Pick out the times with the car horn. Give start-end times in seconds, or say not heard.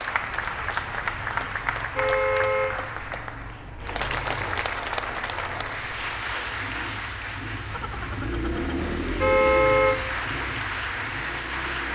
0.5-2.7, 7.7-9.9.